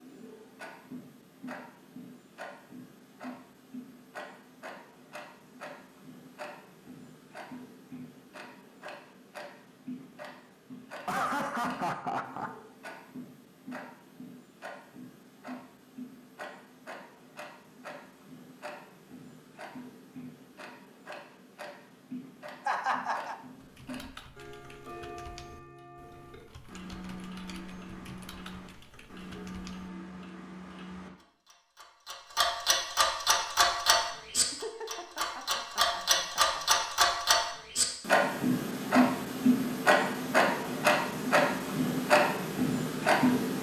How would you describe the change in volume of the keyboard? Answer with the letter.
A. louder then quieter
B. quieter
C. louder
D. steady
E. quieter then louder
D.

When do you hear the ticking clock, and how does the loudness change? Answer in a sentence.
The ticking clock can be heard from 0.0 to 43.5 s, getting louder.